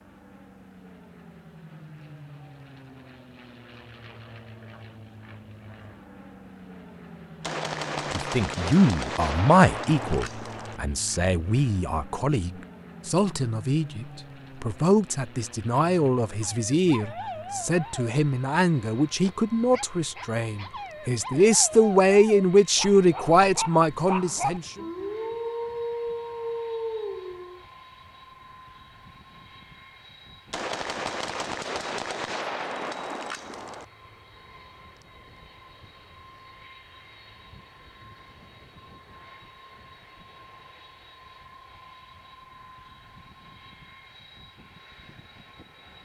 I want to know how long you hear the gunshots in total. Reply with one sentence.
You can hear the gunshots for 7 seconds altogether.